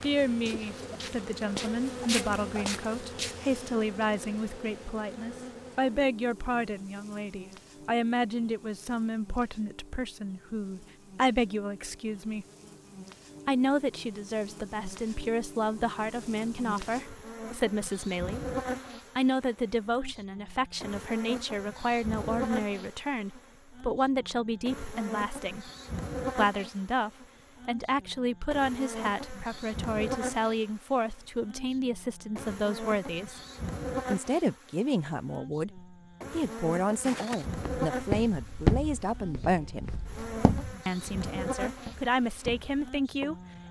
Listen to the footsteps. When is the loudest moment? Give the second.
39 s.